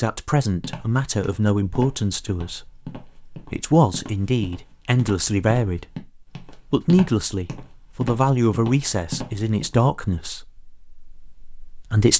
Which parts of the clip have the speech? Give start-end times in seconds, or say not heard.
0.0-12.1.